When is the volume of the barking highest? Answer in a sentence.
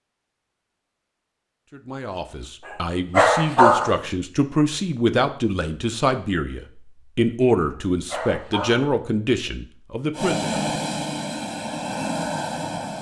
The volume of the barking peaks at 4 seconds.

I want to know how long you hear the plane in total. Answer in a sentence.
The plane can be heard for 3 seconds in total.